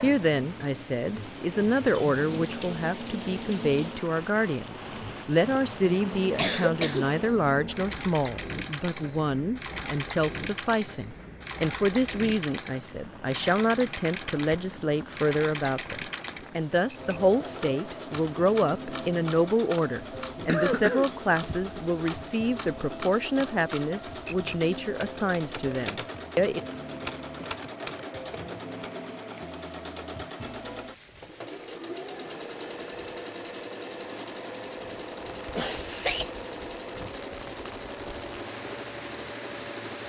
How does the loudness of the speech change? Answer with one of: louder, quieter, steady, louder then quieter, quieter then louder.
steady.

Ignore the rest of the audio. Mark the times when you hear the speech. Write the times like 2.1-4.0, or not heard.
0.0-26.6.